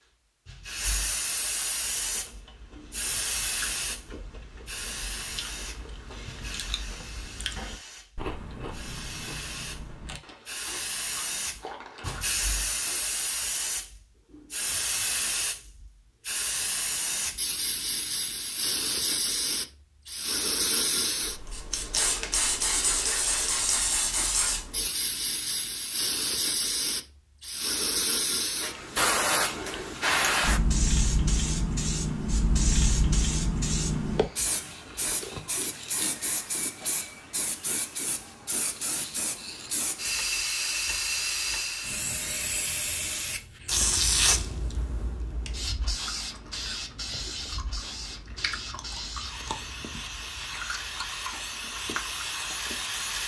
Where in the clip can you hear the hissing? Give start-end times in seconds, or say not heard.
0.0-53.2.